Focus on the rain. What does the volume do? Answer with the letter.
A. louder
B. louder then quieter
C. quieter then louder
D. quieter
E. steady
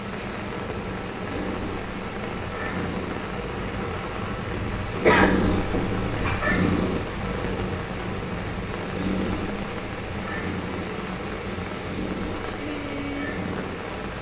E.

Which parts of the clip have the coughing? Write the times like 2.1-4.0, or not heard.
5.0-6.6.